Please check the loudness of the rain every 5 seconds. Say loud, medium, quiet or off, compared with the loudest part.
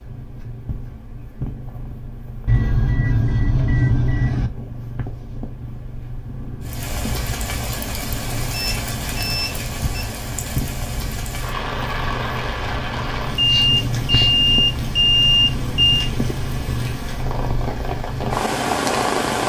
off, loud, loud, loud.